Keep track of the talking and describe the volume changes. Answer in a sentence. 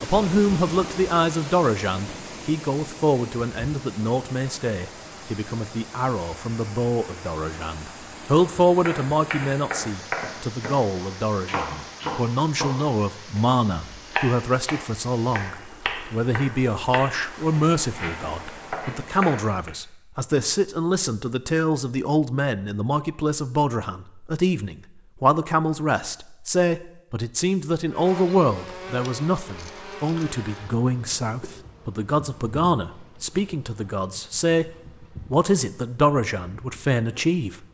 The volume of the talking stays about the same.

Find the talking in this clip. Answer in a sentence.
You can hear the talking from 0.0 to 37.6 s.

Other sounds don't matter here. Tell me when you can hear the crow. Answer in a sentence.
You can't hear the crow here.